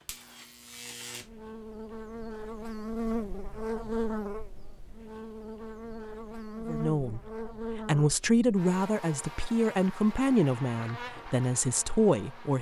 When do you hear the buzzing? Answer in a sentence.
The buzzing can be heard from 0.0 to 12.5 s.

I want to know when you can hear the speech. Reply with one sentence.
You can hear the speech from 6.7 to 12.5 s.